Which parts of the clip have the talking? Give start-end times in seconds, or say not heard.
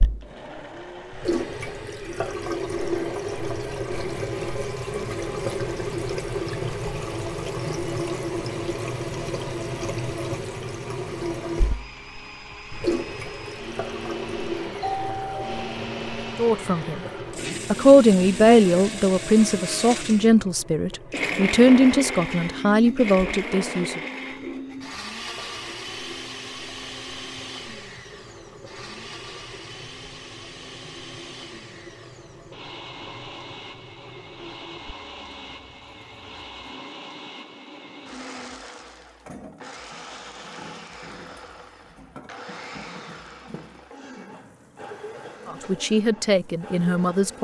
16.4-17.1, 17.7-24.0, 45.5-47.3.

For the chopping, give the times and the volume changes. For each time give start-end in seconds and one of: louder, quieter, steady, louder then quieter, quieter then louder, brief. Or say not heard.
not heard.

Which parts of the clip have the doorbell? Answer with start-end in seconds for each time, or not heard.
14.8-15.8.